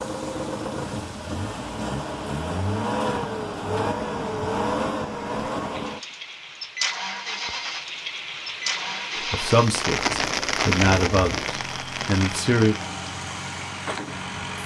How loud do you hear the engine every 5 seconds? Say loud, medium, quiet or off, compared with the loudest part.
loud, loud, medium.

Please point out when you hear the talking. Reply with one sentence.
The talking can be heard from 9.3 to 12.8 s.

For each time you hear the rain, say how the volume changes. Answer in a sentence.
You can hear the rain from 0.0 to 14.6 s, getting louder then quieter.